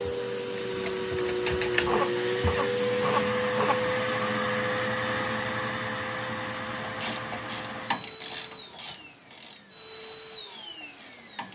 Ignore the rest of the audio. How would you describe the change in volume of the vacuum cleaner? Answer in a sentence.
The volume of the vacuum cleaner goes down.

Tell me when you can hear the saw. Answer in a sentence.
You can hear the saw from 1.9 to 4.0 s.